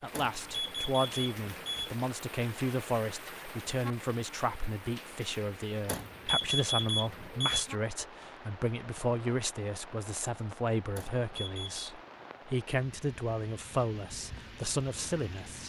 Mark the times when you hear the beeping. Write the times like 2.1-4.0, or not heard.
0.1-1.9, 5.8-7.7, 10.9-11.9.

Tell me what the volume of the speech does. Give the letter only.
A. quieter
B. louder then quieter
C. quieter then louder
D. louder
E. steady
E.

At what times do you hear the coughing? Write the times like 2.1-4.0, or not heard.
not heard.